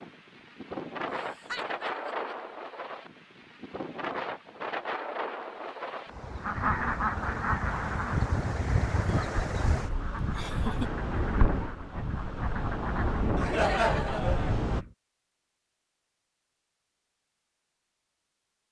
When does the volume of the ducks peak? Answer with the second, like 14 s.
7 s.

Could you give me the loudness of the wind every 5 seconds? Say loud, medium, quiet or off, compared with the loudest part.
loud, loud, loud, off.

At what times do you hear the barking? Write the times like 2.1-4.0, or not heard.
not heard.